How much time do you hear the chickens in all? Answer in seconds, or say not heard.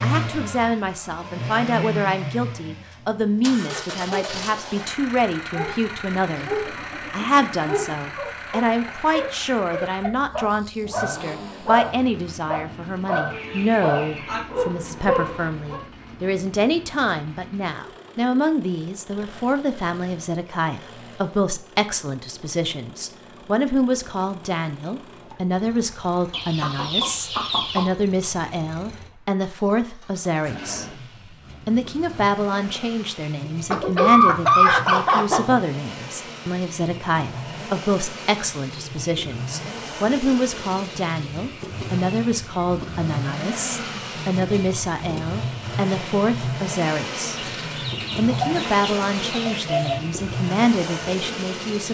9 s.